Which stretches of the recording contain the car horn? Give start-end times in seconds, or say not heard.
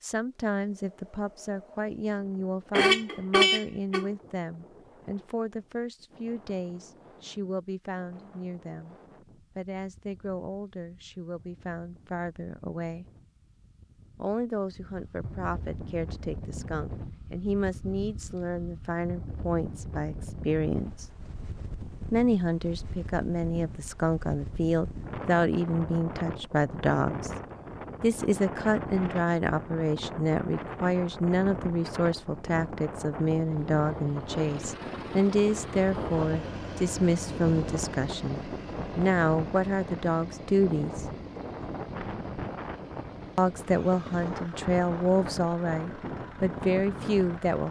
2.7-4.0.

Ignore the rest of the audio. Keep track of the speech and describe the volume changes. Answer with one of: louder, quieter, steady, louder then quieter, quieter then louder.
louder.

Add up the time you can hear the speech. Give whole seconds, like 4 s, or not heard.
42 s.